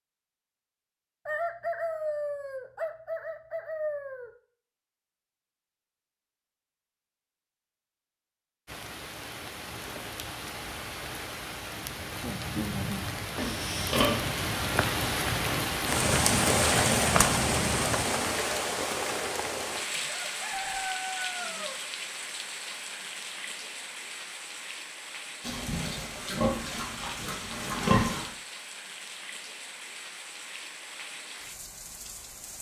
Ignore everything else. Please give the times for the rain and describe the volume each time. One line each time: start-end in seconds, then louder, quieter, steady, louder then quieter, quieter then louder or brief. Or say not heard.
8.7-32.5 louder then quieter.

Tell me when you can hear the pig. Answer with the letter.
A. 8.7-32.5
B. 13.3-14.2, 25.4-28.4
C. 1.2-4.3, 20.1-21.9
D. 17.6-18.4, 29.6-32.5
B.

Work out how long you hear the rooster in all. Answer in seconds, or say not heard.
5 s.